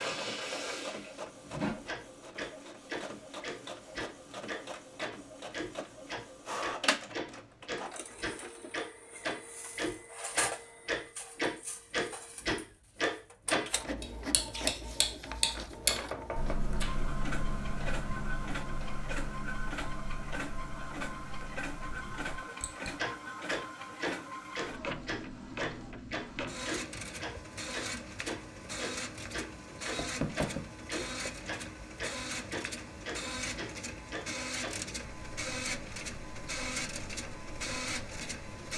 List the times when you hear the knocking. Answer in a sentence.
You can hear the knocking from 15.9 to 16.6 s and from 29.9 to 30.6 s.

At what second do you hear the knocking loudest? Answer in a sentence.
The volume of the knocking peaks at 30 seconds.